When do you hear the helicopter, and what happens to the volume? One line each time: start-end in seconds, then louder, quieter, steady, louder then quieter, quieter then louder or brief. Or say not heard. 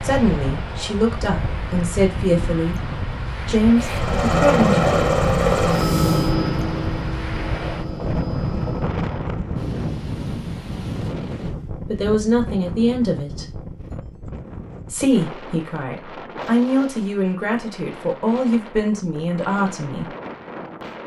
3.8-9.0 quieter.